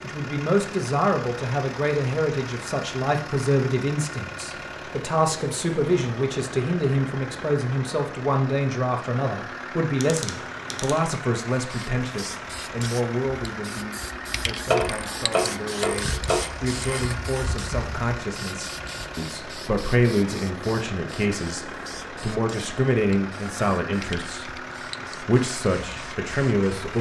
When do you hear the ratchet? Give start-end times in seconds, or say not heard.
9.9-11.1, 14.7-17.1.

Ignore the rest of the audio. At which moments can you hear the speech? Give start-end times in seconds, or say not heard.
0.0-26.9.